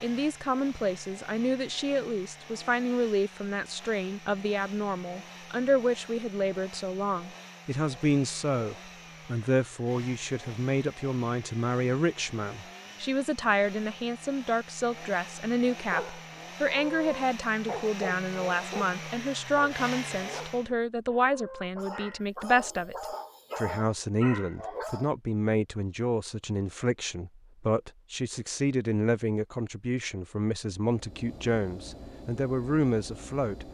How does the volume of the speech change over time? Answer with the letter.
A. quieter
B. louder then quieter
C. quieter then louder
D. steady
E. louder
D.